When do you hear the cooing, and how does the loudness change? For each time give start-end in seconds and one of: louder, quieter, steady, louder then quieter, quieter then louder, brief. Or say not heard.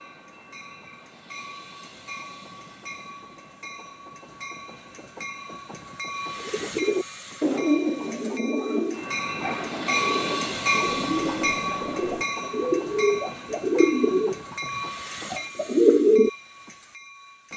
6.4-16.3 quieter then louder.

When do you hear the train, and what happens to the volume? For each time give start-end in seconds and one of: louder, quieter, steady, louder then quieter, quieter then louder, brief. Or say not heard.
0.0-17.5 louder then quieter.